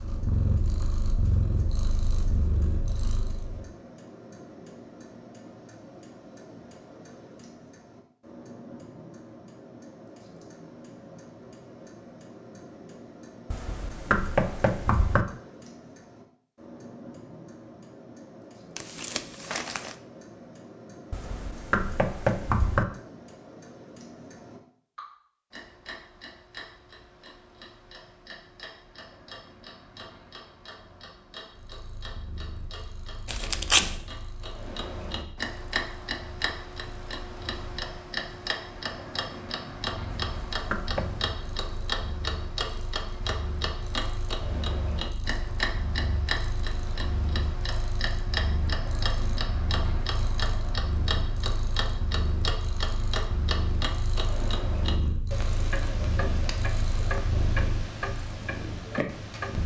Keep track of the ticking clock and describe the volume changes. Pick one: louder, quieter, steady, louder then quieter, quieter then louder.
louder.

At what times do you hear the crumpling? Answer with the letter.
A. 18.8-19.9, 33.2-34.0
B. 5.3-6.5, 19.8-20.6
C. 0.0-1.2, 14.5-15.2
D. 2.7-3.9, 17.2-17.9
A.